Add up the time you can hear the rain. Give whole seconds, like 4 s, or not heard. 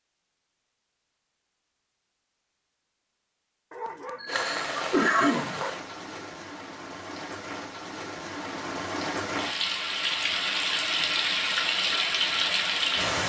9 s.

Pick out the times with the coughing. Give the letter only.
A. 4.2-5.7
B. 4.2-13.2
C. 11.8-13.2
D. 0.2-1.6
A.